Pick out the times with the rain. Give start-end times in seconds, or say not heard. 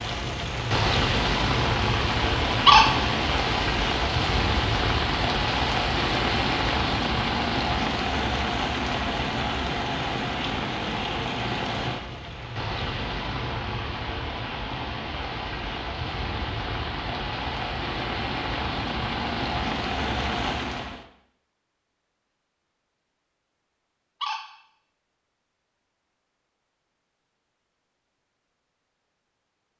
0.0-21.1.